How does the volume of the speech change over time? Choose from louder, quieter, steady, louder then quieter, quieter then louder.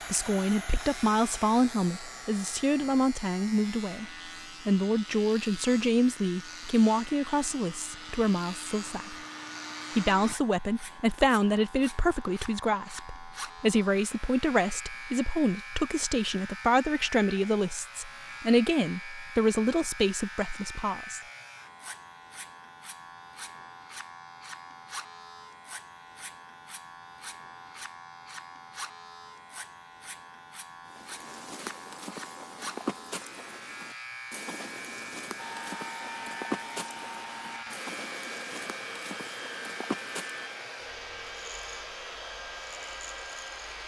steady.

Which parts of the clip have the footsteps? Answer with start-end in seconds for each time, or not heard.
30.9-40.6.